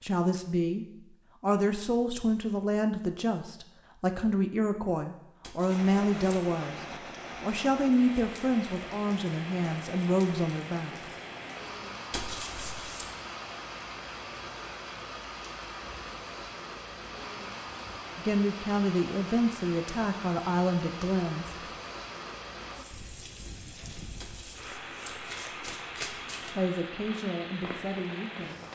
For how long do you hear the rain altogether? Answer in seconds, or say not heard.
23 s.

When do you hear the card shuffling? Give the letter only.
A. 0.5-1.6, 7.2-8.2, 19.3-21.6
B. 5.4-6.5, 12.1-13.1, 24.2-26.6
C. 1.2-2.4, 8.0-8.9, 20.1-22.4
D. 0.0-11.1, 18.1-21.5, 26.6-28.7
B.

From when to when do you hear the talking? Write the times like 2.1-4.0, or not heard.
0.0-11.1, 18.1-21.5, 26.6-28.7.